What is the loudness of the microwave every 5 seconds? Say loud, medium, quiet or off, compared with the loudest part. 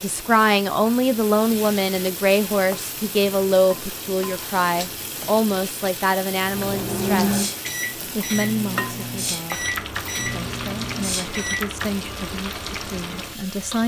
off, loud, loud.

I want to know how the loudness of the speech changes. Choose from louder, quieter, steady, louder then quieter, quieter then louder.
quieter.